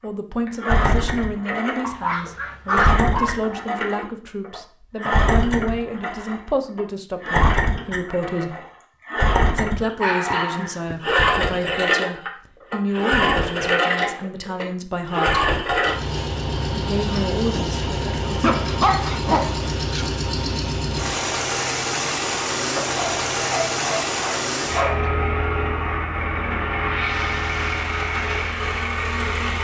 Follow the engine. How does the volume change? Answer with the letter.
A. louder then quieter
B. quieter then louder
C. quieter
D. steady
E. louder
D.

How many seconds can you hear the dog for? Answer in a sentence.
The dog can be heard for 7 seconds in total.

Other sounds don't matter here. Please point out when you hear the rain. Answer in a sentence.
You can't hear the rain here.